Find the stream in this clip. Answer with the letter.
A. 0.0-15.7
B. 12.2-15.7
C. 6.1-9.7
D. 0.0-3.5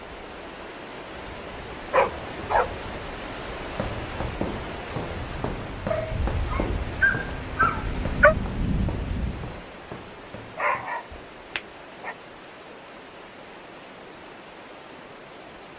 A.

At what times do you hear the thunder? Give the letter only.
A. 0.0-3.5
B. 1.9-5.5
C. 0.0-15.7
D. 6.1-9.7
D.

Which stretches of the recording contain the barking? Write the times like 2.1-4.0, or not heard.
1.9-2.8, 5.9-8.3, 10.6-12.2.